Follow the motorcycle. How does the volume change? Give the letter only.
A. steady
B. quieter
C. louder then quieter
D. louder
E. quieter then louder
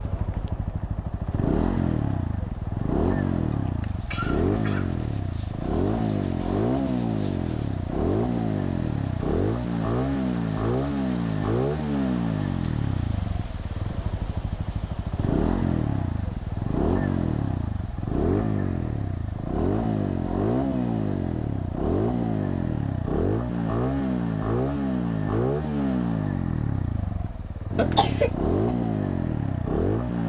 A.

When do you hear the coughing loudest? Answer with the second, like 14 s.
28 s.